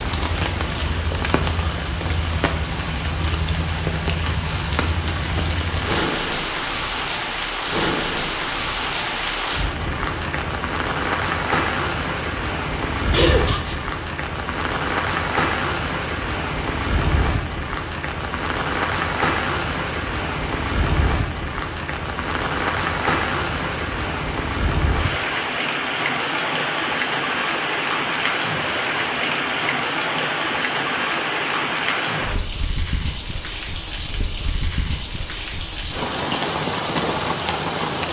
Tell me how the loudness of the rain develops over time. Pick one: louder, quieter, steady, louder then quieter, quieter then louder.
steady.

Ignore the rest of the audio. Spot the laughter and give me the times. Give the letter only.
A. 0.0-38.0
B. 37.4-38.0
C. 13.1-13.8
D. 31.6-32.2
C.